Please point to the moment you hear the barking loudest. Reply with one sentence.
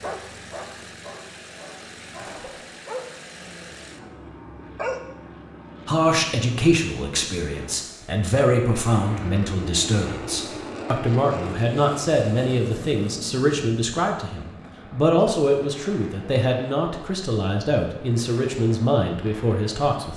The loudest moment of the barking is at 5 seconds.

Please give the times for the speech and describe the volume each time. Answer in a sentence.
You can hear the speech from 5.8 to 20.1 s, at a steady volume.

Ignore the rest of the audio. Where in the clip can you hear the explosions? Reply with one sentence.
You can hear the explosions from 2.1 to 2.6 s.